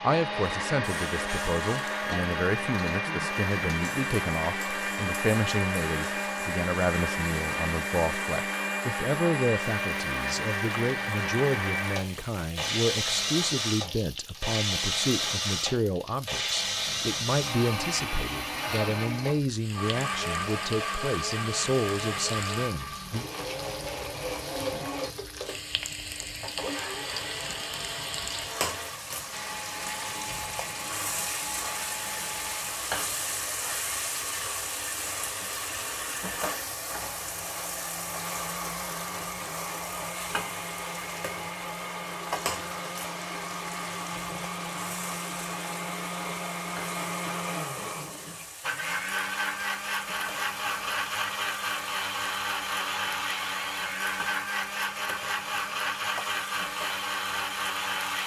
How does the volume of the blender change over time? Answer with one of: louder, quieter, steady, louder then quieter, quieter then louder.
quieter then louder.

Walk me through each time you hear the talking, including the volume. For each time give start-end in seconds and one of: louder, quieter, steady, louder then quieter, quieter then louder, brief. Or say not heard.
0.0-23.2 steady.